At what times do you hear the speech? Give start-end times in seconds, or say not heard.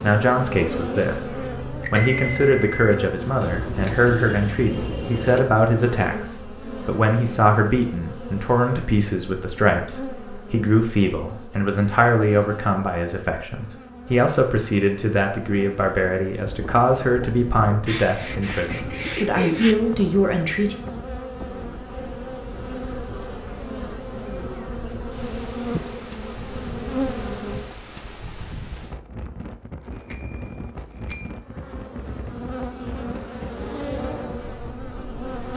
0.0-20.8.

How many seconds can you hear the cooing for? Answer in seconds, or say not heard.
4 s.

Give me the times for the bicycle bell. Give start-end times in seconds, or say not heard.
1.8-3.0, 29.9-31.2.